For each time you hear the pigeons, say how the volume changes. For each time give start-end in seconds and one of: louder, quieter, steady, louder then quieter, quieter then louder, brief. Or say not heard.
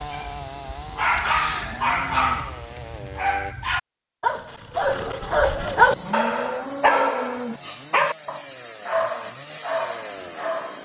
not heard.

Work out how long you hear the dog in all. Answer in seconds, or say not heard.
11 s.